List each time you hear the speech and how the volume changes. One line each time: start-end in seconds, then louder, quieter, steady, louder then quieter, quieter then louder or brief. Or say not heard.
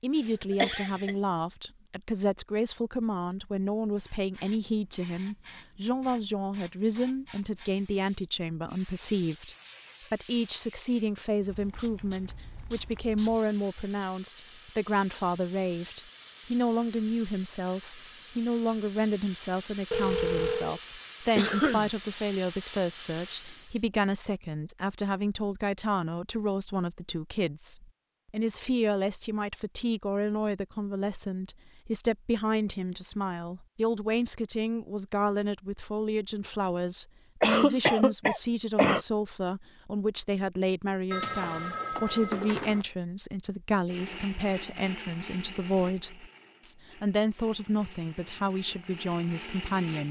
0.0-50.0 steady.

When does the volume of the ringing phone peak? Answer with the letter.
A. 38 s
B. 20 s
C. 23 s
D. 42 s
B.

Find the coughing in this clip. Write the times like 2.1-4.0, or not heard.
0.1-1.1, 21.4-21.9, 37.4-39.0.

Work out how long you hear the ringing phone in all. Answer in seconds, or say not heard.
3 s.